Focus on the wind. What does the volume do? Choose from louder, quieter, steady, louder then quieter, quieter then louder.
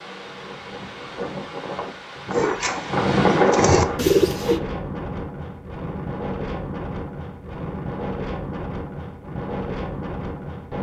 louder then quieter.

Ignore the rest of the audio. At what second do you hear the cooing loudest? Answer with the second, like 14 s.
4 s.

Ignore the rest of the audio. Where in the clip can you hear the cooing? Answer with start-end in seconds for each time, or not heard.
2.3-4.6.